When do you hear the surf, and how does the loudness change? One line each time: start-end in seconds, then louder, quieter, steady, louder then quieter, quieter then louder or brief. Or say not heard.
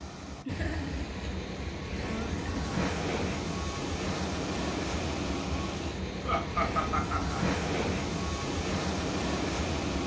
0.0-10.0 louder.